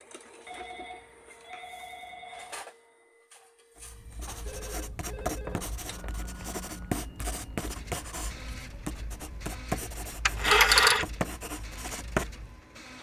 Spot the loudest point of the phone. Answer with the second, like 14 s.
11 s.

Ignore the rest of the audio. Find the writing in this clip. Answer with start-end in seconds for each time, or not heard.
3.8-12.6.